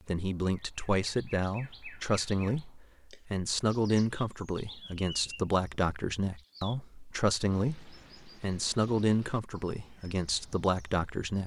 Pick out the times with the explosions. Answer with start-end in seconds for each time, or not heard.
not heard.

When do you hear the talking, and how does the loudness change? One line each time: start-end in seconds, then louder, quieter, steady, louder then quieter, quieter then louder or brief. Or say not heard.
0.1-11.4 steady.